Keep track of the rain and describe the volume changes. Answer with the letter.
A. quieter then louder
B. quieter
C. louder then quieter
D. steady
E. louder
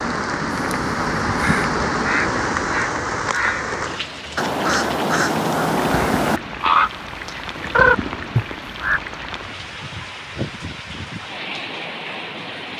B.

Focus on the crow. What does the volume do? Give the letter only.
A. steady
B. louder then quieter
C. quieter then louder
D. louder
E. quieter
D.